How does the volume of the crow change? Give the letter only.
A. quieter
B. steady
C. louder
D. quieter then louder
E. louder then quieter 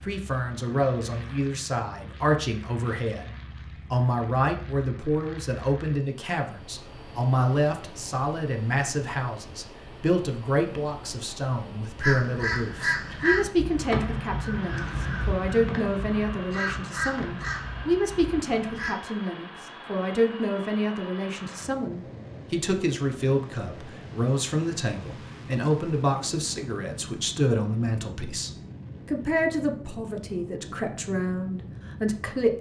A.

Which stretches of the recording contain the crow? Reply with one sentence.
You can hear the crow from 12.0 to 18.9 s.